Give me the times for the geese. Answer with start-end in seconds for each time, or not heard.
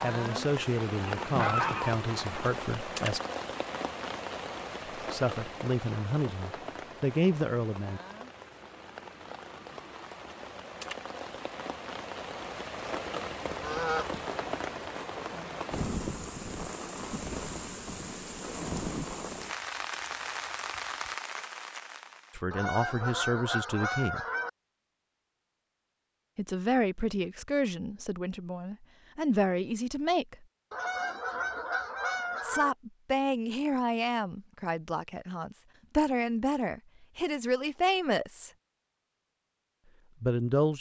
1.2-2.5, 13.4-14.2, 22.5-24.5, 30.7-32.7.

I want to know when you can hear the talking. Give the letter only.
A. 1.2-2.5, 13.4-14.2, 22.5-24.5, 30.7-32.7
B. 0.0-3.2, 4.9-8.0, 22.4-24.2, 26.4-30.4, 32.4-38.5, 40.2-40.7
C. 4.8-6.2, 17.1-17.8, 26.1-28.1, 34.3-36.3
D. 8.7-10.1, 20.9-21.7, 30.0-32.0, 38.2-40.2
B.